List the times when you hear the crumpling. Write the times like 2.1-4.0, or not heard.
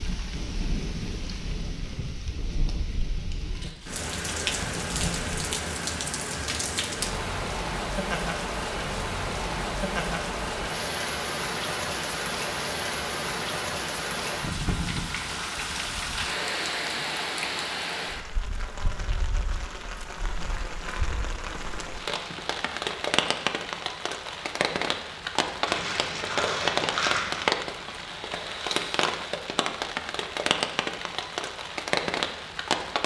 3.3-5.5, 25.6-27.5.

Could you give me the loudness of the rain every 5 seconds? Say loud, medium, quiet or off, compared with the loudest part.
medium, loud, loud, loud, loud, loud, loud.